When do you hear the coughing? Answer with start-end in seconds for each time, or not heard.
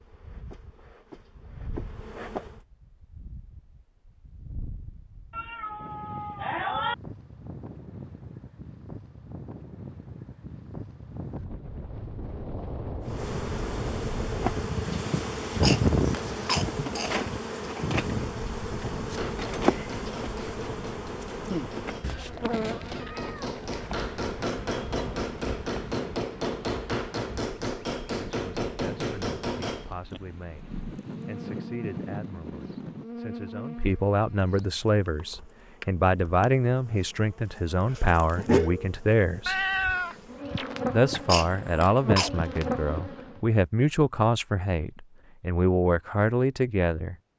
15.5-17.1, 41.1-42.3.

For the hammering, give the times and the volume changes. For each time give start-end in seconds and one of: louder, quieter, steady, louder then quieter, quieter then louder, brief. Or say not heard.
19.1-30.2 louder.